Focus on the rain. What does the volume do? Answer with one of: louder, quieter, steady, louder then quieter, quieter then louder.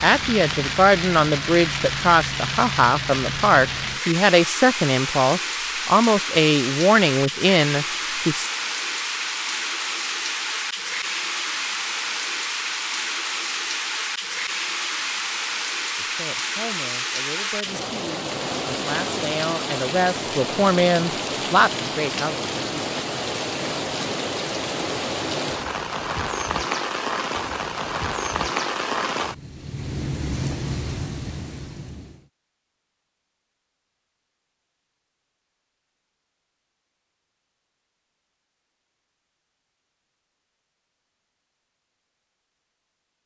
steady.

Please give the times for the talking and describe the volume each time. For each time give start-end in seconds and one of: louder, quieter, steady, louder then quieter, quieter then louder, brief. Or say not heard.
0.0-8.5 steady
15.9-22.8 louder.